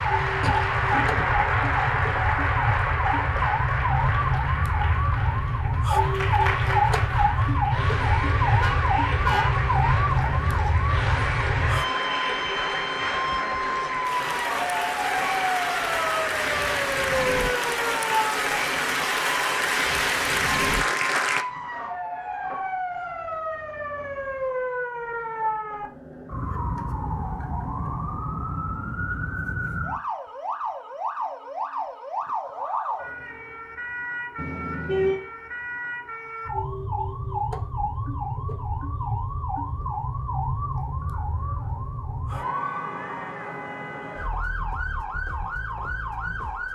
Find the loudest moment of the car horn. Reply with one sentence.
The volume of the car horn peaks at 35 seconds.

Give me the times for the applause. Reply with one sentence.
The applause can be heard from 0.0 to 21.4 s.